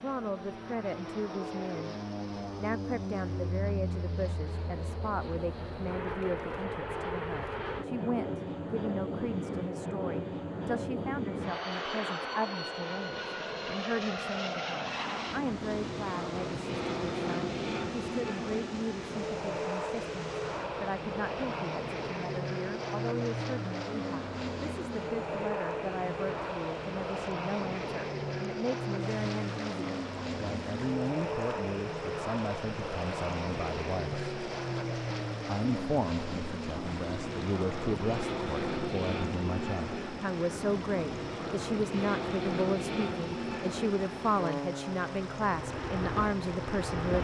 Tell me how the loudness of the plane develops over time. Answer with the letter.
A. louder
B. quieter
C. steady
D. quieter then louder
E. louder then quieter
C.